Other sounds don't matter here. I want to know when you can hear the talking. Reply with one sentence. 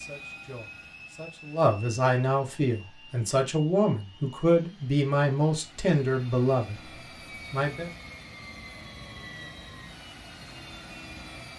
You can hear the talking from 0.0 to 7.9 s.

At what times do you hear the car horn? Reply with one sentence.
You can't hear the car horn here.